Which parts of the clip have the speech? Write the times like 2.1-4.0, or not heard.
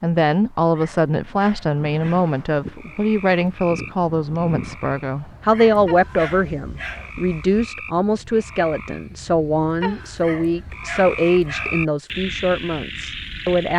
0.0-13.7.